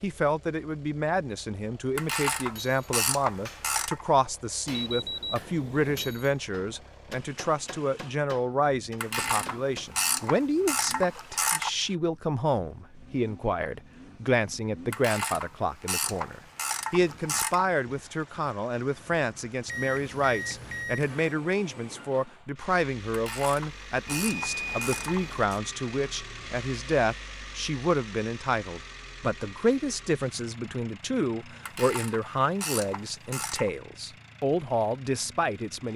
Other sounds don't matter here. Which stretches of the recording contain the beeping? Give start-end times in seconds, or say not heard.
4.7-6.2, 19.6-21.4, 24.1-25.4.